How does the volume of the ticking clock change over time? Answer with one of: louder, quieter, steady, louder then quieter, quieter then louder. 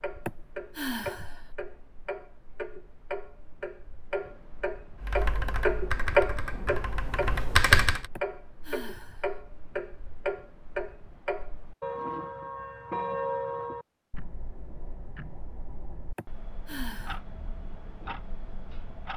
louder then quieter.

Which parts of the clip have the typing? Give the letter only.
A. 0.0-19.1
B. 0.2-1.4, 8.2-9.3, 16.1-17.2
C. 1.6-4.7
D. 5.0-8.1
D.